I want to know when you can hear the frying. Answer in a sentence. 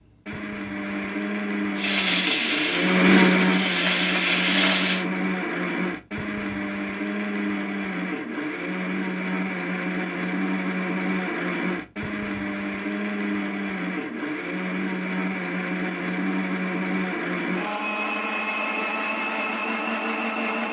You can hear the frying from 1.8 to 5.0 s.